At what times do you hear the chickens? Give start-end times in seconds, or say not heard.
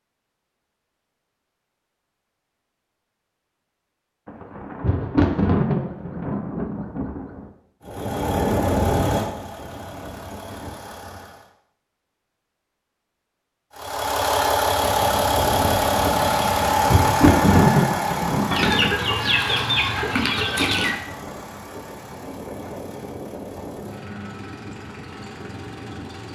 18.5-21.0.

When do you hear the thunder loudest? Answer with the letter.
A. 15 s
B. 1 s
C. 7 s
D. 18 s
D.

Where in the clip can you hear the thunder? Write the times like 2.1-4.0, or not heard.
4.2-7.5, 16.5-18.9.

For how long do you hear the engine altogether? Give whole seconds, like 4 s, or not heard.
16 s.